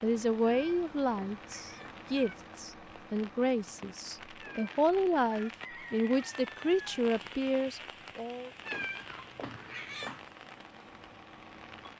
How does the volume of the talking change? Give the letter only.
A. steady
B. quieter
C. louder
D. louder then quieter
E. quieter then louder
A.